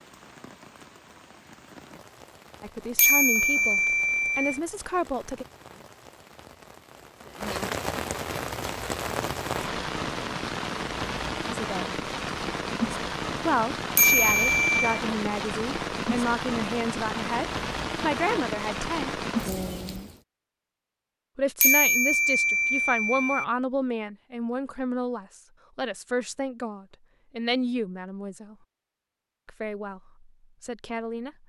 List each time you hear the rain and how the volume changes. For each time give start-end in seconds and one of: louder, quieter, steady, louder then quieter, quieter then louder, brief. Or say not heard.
0.0-20.2 louder.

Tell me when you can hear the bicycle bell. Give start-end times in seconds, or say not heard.
3.0-4.6, 13.9-15.0, 21.6-23.4.